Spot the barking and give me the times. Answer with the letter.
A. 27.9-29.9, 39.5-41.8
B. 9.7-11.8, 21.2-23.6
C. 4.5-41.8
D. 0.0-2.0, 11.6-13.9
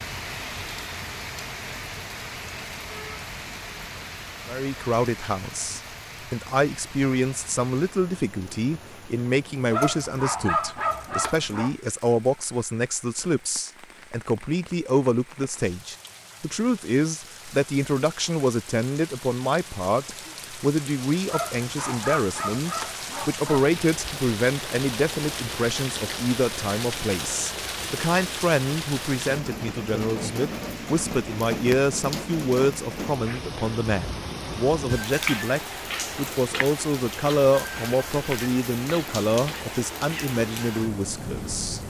B.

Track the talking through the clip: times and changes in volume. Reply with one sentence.
The talking can be heard from 4.5 to 41.8 s, at a steady volume.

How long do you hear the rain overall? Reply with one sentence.
You can hear the rain for 42 seconds altogether.